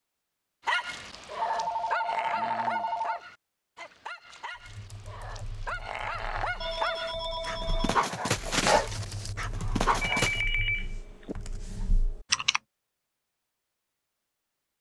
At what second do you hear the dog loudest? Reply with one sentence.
The volume of the dog peaks at 9 seconds.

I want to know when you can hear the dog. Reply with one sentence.
You can hear the dog from 0.7 to 10.4 s.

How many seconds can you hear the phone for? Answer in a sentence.
The phone can be heard for 5 seconds in total.